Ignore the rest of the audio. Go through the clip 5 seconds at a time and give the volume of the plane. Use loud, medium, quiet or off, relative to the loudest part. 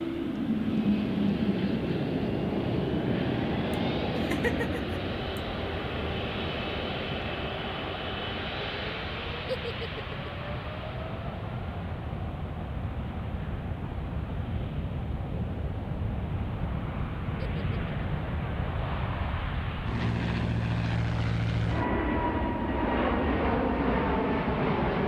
loud, medium, medium, medium, loud.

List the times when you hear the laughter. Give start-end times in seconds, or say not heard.
3.7-5.4, 9.4-10.3, 17.4-18.2.